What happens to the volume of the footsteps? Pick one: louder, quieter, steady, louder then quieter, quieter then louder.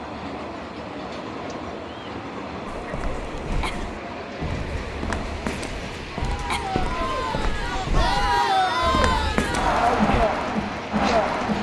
louder.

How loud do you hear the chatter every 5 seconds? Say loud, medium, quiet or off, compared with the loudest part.
quiet, loud, loud.